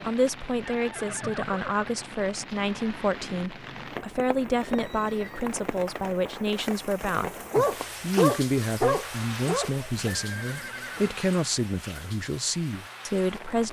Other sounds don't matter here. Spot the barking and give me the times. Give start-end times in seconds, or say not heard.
7.2-10.2.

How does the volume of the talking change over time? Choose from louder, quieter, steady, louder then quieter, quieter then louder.
steady.